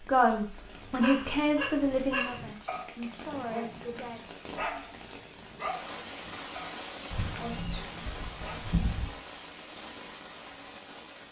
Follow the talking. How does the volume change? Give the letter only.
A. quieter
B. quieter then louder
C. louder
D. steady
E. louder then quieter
A.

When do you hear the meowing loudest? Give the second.
9 s.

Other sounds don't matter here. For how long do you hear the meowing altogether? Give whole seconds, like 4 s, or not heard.
2 s.